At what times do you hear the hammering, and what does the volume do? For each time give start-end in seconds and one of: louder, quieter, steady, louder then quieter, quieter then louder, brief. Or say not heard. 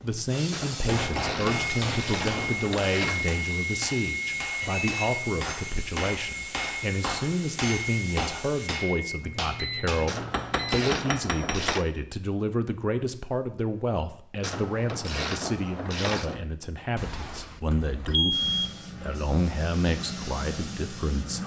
0.8-11.8 steady.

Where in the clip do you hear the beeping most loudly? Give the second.
18 s.